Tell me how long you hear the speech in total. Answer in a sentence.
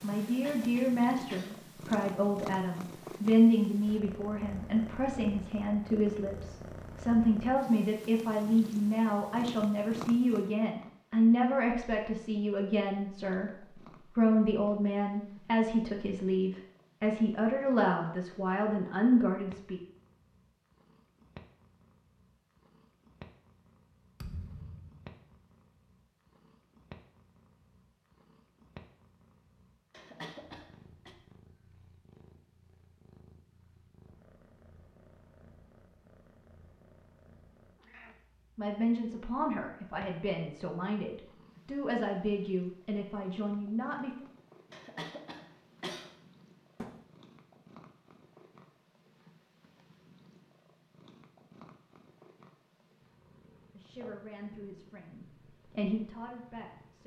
You can hear the speech for 29 seconds altogether.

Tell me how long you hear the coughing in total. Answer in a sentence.
You can hear the coughing for 4 seconds altogether.